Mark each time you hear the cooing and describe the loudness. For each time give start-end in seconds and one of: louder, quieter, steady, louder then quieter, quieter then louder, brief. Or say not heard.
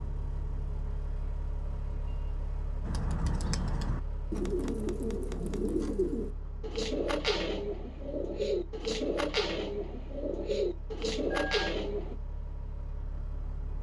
2.8-12.2 steady.